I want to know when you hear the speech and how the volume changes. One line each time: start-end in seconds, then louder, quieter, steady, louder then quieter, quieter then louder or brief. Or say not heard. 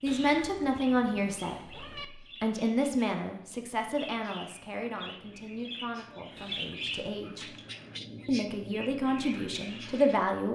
0.0-7.5 quieter
8.2-10.4 brief.